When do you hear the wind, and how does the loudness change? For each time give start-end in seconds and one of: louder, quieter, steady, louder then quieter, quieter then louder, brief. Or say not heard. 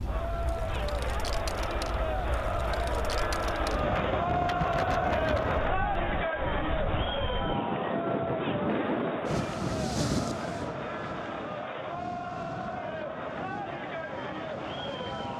0.0-15.3 louder then quieter.